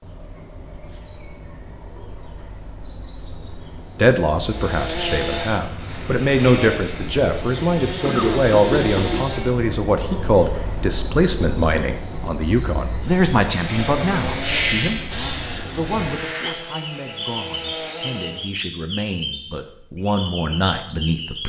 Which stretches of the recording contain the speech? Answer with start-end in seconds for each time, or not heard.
4.0-21.4.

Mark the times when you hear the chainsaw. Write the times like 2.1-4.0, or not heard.
4.4-9.6, 13.0-18.4.